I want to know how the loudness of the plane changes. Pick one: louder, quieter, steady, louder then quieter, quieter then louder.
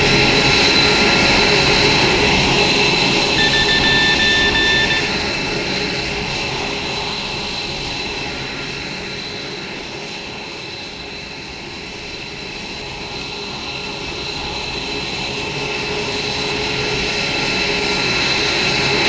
quieter then louder.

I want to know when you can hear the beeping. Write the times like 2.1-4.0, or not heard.
3.4-5.0.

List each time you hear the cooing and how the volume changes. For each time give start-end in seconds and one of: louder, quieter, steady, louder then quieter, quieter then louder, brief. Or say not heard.
not heard.